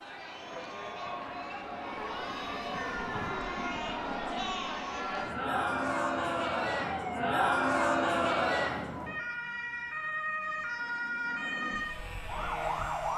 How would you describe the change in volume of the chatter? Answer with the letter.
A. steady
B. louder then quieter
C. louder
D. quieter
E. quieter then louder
C.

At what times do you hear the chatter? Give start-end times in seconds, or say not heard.
0.0-9.1.